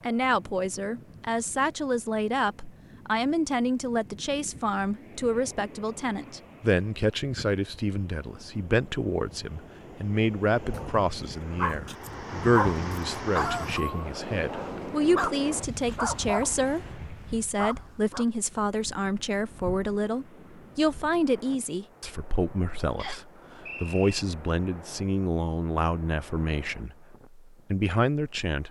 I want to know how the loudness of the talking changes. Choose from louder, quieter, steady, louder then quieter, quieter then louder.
steady.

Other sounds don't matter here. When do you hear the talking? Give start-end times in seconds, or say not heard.
0.0-28.6.